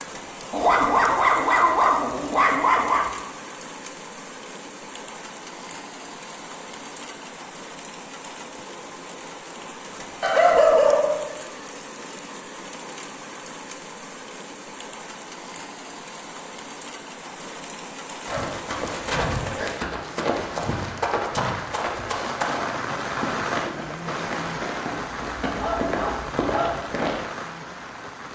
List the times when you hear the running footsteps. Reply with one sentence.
The running footsteps can be heard from 18.2 to 27.2 s.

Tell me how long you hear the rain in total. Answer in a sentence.
You can hear the rain for 28 seconds altogether.